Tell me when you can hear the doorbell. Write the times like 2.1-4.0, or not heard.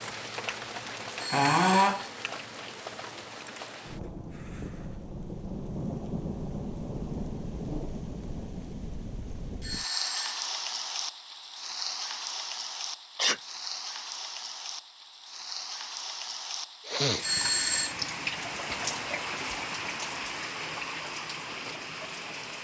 1.1-1.9, 9.6-10.3, 17.2-17.9.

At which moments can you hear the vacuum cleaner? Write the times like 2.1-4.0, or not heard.
not heard.